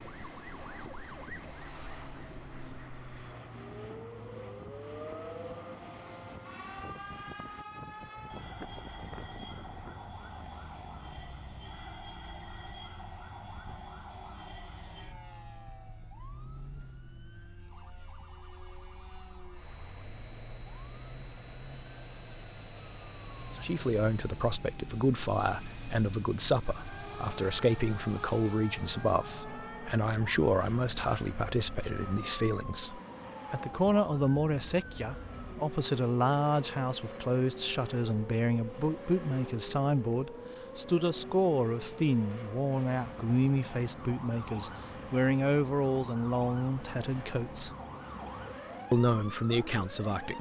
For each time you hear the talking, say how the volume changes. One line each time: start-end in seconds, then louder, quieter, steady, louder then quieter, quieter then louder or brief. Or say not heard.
23.5-47.7 steady
48.9-50.3 brief.